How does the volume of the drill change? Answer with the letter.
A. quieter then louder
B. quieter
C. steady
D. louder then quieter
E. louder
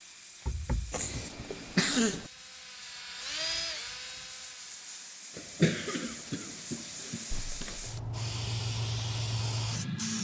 D.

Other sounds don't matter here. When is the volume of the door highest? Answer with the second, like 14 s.
1 s.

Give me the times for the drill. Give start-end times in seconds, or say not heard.
0.0-5.0.